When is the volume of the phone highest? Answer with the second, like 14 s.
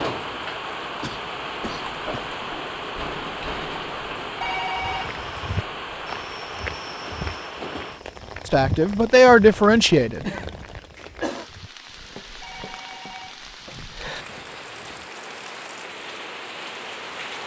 5 s.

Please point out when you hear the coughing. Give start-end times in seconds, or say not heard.
1.0-2.4, 10.1-11.4.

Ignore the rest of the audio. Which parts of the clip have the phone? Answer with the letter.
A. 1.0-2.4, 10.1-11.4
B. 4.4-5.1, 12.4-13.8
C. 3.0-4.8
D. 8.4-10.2
B.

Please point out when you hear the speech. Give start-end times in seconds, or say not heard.
8.4-10.2.